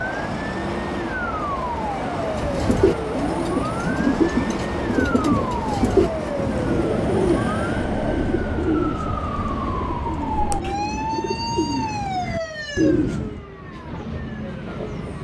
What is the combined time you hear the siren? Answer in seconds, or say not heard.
15 s.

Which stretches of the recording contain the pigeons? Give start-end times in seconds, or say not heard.
2.1-13.4.